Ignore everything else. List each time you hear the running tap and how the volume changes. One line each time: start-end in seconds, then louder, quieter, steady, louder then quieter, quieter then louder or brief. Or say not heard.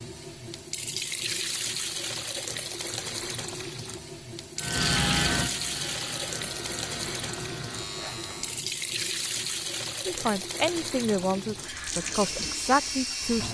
0.0-13.4 steady.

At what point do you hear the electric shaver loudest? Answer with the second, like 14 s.
5 s.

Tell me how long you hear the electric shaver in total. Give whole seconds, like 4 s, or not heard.
4 s.